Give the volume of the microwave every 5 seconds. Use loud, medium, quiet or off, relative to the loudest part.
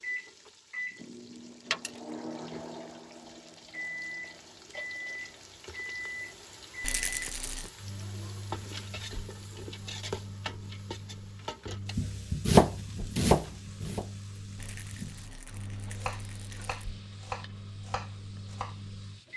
loud, loud, medium, medium.